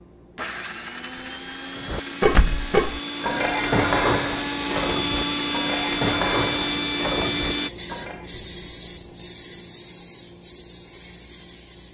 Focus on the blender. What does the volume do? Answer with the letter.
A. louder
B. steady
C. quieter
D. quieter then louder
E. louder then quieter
A.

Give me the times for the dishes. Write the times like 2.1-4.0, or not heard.
1.9-8.3.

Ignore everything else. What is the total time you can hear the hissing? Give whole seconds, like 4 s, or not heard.
12 s.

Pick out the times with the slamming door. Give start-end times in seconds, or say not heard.
2.3-2.8.